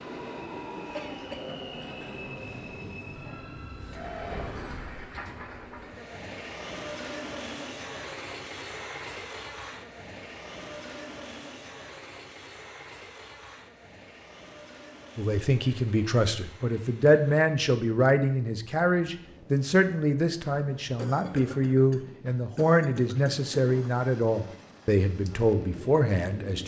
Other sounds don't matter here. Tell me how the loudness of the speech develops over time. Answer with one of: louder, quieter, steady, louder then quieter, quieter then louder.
steady.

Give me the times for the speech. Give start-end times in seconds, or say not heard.
15.2-26.6.